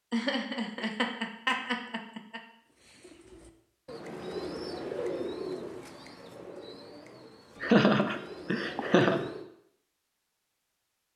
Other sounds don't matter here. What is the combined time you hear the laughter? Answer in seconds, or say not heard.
4 s.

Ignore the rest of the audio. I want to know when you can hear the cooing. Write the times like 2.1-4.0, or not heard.
2.6-9.4.